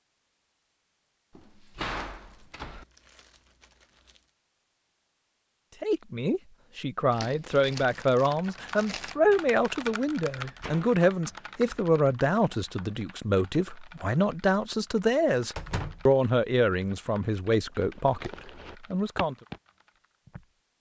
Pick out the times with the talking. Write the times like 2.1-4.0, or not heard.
5.8-19.4.